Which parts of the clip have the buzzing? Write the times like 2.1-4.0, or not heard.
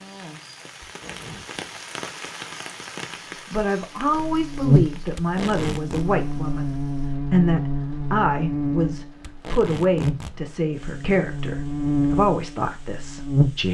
4.0-13.6.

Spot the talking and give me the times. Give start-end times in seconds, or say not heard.
3.5-13.6.